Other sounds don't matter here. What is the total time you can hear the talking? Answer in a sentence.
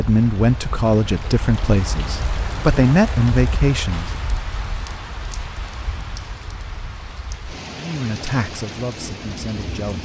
The talking can be heard for 6 seconds in total.